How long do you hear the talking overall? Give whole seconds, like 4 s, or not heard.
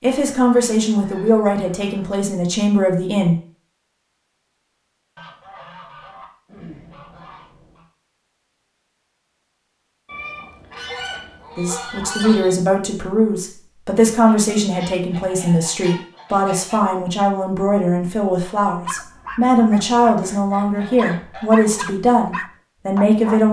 15 s.